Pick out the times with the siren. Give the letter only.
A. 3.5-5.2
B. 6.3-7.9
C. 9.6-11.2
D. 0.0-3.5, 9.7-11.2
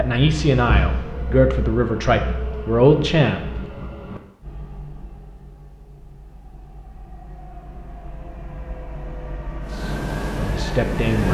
C.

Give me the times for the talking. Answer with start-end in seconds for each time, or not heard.
0.0-3.5, 9.7-11.2.